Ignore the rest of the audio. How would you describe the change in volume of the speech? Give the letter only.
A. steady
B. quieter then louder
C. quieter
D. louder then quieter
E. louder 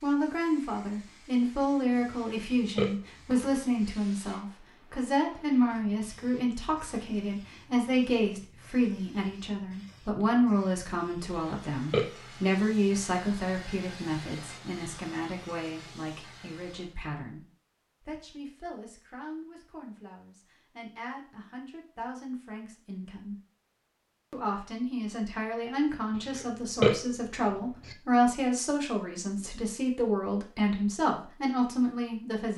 B.